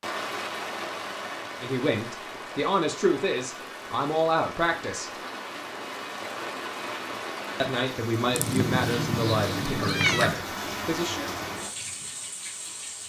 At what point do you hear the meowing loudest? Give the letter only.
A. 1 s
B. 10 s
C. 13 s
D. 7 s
B.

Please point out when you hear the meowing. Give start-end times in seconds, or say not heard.
8.3-10.3.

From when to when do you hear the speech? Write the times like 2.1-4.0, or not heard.
1.6-5.1, 7.6-11.3.